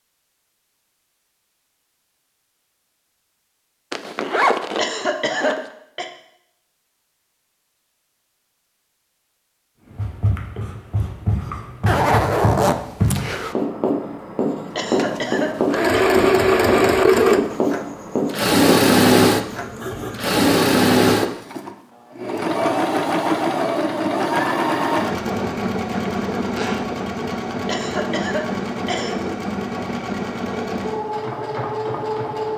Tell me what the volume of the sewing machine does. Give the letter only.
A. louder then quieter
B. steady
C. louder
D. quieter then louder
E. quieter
E.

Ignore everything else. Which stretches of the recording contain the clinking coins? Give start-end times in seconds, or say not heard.
not heard.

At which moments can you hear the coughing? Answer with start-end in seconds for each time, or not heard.
4.8-6.0, 14.8-16.0, 27.6-29.1.